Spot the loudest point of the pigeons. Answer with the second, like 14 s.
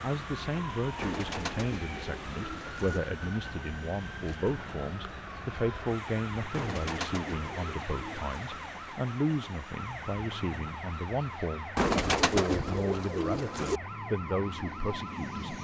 12 s.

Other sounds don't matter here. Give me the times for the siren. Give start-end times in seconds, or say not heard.
0.0-15.5.